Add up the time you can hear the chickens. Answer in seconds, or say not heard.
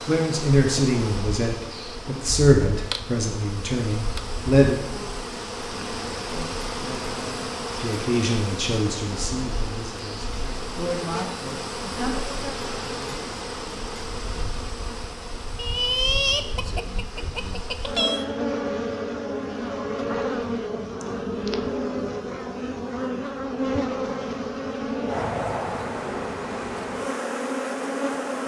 3 s.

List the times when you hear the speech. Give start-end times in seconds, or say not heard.
0.0-4.8, 7.8-12.2.